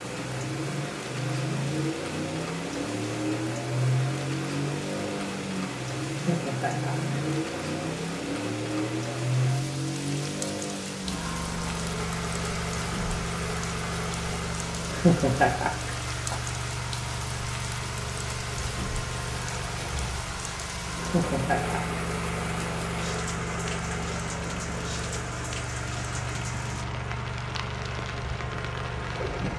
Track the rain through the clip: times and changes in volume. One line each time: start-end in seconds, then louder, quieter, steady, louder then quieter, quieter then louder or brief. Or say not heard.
0.0-29.5 steady.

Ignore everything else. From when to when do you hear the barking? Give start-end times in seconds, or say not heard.
not heard.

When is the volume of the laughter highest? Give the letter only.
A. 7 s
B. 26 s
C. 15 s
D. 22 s
C.